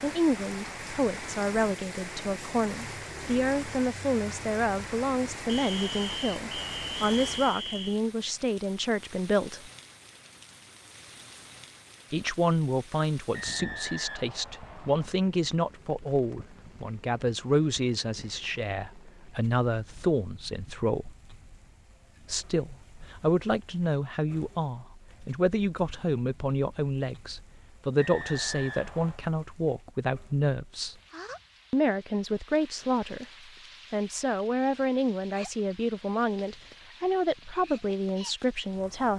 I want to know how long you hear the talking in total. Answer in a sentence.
You can hear the talking for 34 seconds altogether.